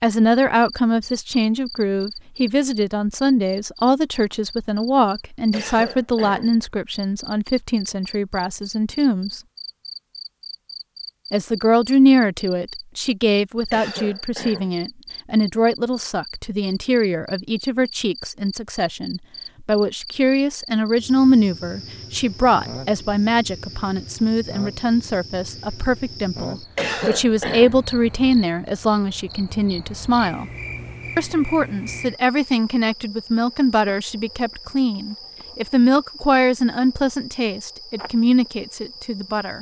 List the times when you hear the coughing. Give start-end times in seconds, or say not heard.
5.5-6.5, 13.7-14.8, 26.8-27.8.